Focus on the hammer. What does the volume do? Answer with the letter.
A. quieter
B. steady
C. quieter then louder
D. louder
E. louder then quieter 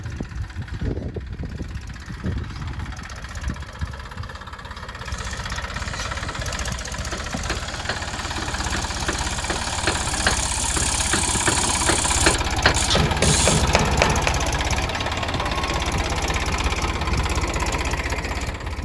D.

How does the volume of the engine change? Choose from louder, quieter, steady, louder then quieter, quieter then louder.
louder.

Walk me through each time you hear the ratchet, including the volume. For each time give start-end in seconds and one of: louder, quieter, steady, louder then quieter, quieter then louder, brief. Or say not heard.
5.2-13.8 louder.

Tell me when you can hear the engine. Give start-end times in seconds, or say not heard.
0.0-18.8.